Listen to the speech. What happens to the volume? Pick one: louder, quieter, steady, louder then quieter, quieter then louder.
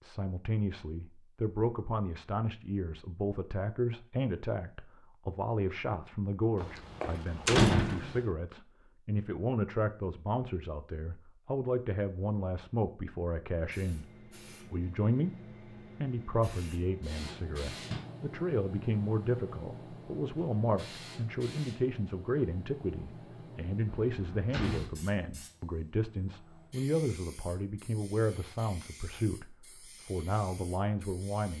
steady.